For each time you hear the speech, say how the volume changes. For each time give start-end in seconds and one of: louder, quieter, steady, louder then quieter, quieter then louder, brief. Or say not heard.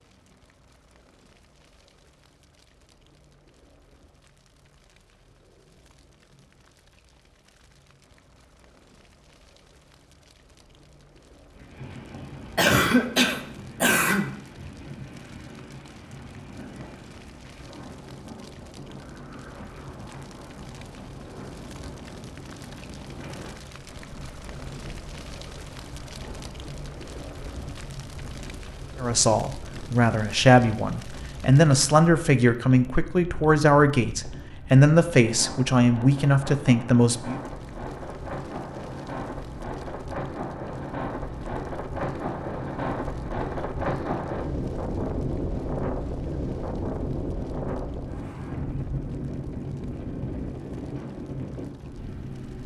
29.0-37.4 steady.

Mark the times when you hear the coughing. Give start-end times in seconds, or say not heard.
12.6-14.3.